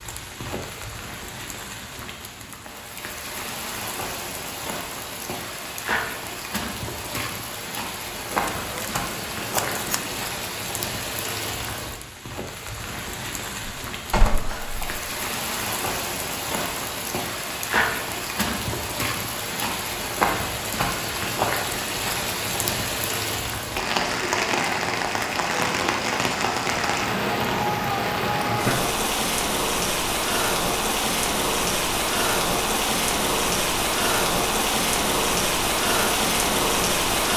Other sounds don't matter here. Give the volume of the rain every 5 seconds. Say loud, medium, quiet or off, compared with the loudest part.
quiet, medium, medium, medium, loud, loud, loud, loud.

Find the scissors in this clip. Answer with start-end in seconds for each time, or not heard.
8.3-10.2.